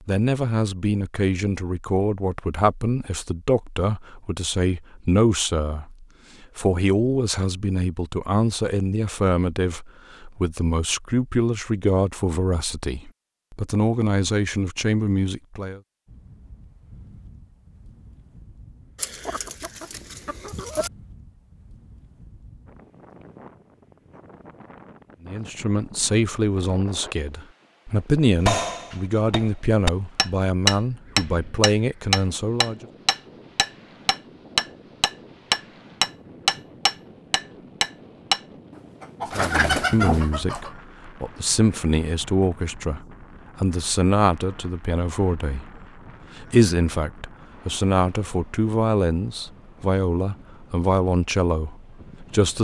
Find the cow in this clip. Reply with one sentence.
You can't hear the cow here.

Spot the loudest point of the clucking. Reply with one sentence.
The volume of the clucking peaks at 40 seconds.